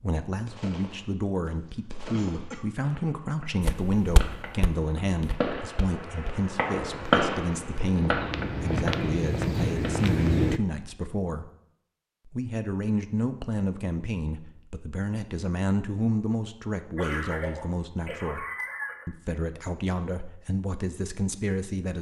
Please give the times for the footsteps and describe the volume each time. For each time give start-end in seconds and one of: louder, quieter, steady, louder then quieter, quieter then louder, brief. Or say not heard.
3.6-10.6 quieter then louder.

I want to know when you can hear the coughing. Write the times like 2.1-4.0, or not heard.
2.1-2.6, 16.9-19.1.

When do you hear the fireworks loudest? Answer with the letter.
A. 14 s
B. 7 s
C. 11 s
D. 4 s
B.